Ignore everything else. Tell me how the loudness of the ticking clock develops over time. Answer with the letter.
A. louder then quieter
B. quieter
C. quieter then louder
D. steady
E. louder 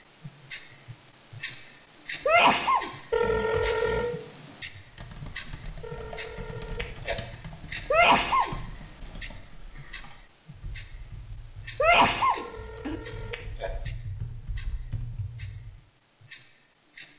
B.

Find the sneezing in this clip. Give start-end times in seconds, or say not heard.
2.2-2.9, 7.9-8.6, 11.8-12.9.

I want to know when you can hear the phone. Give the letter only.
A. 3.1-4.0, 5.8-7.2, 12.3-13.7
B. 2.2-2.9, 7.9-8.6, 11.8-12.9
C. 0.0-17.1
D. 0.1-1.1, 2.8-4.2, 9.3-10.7
A.